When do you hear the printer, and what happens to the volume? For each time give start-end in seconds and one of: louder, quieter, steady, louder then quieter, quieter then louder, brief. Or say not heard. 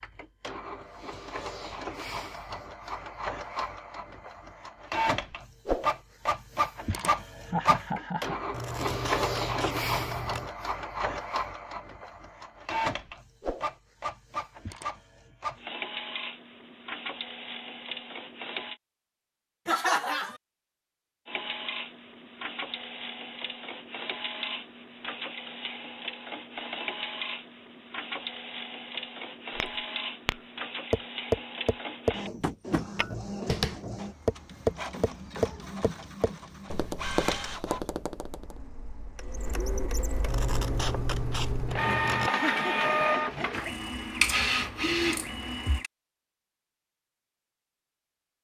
0.0-18.8 louder then quieter
21.2-45.9 louder.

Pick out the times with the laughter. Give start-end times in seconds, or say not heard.
6.9-8.4, 19.6-20.4, 42.2-43.8.